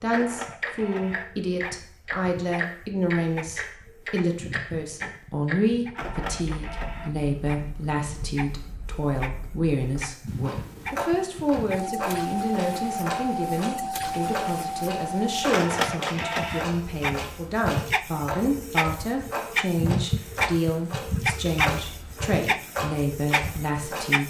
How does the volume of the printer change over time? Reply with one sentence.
The volume of the printer goes up.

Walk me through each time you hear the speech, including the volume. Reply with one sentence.
The speech can be heard from 0.0 to 24.2 s, at a steady volume.